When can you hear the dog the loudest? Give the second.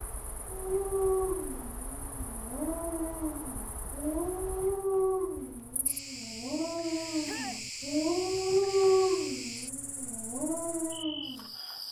9 s.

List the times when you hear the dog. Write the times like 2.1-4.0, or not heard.
0.5-11.5.